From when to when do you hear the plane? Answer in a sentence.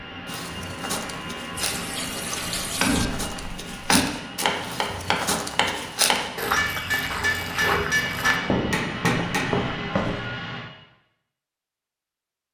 You can hear the plane from 0.0 to 10.7 s.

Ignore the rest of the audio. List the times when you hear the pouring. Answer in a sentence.
You can hear the pouring from 1.5 to 3.1 s and from 6.7 to 7.7 s.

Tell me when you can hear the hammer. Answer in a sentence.
You can hear the hammer from 2.6 to 9.4 s.